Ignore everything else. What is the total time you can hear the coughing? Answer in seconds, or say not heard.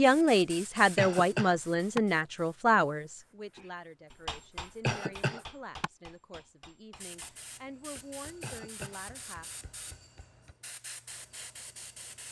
3 s.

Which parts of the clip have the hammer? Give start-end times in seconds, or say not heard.
3.5-10.6.